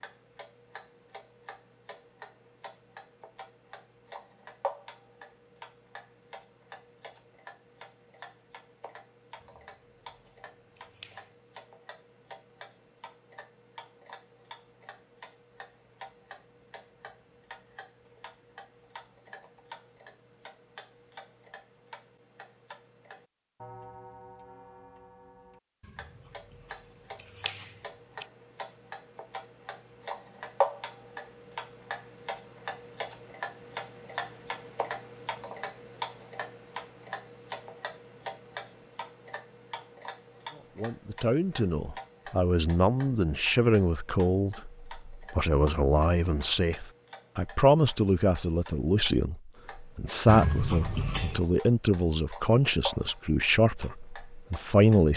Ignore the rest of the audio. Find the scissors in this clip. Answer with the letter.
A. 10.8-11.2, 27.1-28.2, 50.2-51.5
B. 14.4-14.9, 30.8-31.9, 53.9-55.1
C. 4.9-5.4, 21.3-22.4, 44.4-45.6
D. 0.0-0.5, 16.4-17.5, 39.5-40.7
A.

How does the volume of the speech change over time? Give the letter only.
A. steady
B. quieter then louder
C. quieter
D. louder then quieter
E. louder
A.